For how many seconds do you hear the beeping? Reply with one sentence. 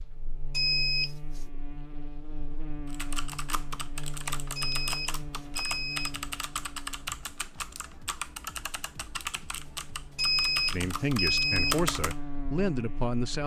The beeping can be heard for 4 seconds in total.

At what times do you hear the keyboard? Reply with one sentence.
You can hear the keyboard from 2.9 to 12.2 s.